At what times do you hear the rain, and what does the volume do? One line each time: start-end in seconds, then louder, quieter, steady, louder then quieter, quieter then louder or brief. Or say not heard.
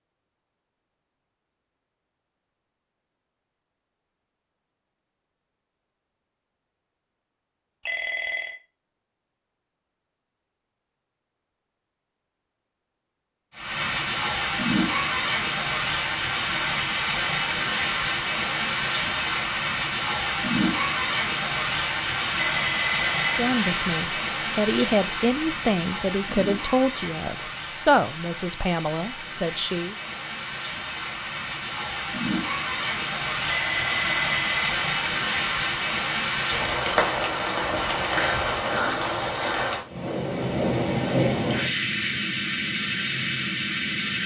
13.6-44.2 quieter then louder.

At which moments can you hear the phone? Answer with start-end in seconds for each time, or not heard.
7.8-8.6, 22.6-23.4, 33.6-34.7.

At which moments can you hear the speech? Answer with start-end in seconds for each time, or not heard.
23.4-29.9.